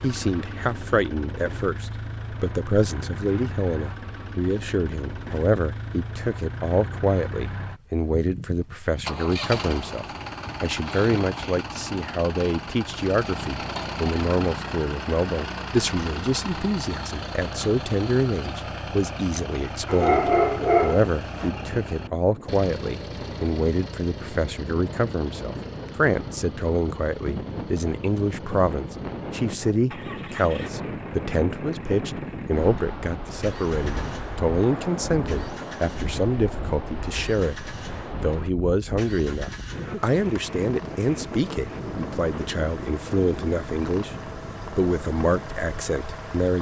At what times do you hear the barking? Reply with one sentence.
The barking can be heard from 19.9 to 21.5 s.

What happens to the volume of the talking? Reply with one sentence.
The loudness of the talking stays about the same.